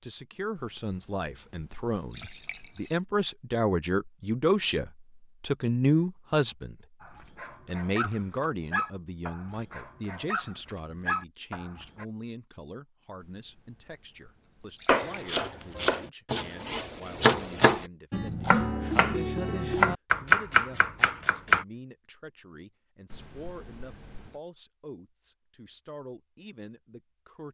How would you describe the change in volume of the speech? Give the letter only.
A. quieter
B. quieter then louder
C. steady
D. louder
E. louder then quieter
A.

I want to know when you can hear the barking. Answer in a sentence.
You can hear the barking from 7.0 to 12.1 s.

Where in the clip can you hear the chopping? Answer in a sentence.
You can hear the chopping from 14.8 to 21.6 s.